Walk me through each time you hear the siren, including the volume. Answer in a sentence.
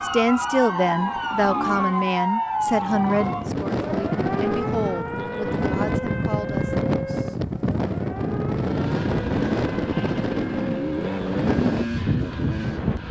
The siren can be heard from 0.0 to 11.2 s, getting quieter.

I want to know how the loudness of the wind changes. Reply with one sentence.
The loudness of the wind stays about the same.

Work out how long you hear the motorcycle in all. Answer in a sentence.
You can hear the motorcycle for 7 seconds altogether.